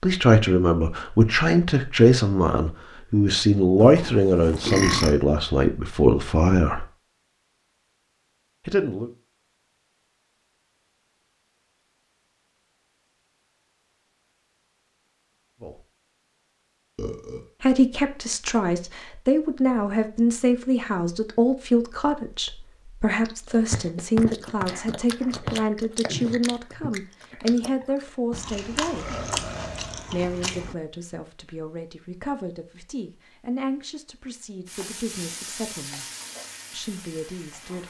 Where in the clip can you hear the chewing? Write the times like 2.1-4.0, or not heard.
23.2-30.8.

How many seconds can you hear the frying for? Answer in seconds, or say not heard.
3 s.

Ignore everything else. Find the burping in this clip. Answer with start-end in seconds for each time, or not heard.
3.8-5.2, 16.9-17.4, 28.9-30.2.